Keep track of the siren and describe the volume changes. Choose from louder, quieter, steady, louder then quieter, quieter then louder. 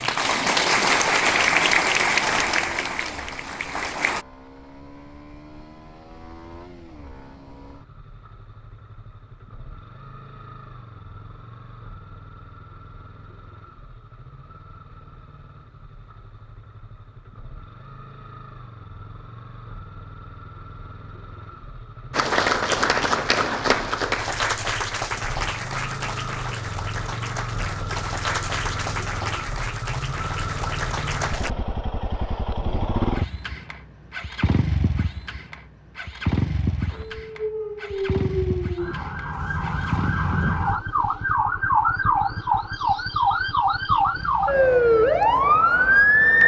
louder.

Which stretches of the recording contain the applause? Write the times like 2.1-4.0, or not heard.
0.0-4.2, 22.1-31.5.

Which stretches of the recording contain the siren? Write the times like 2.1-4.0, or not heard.
36.9-46.4.